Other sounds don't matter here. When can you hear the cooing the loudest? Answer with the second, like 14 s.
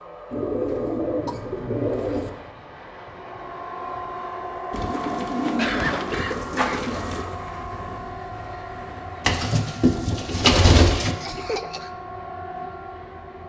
11 s.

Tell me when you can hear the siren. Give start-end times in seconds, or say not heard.
3.0-13.4.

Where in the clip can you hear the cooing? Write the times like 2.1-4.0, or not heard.
0.3-2.3, 4.7-7.2, 9.2-11.2.